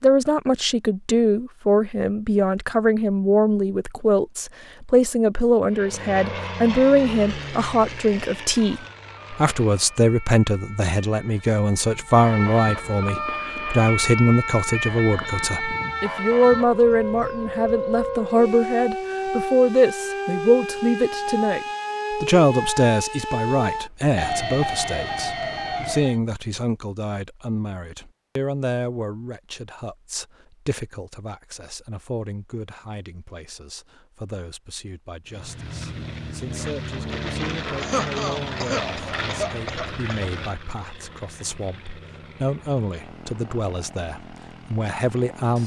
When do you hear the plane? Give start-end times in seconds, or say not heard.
5.7-10.0, 35.2-45.6.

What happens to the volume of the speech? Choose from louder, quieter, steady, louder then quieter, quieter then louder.
quieter.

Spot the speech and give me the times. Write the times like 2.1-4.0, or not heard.
0.0-45.6.